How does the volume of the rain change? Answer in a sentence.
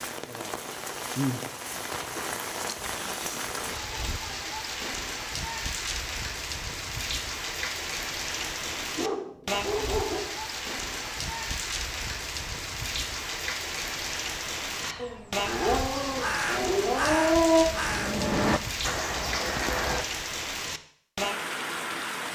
The loudness of the rain stays about the same.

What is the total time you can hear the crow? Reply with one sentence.
The crow can be heard for 5 seconds in total.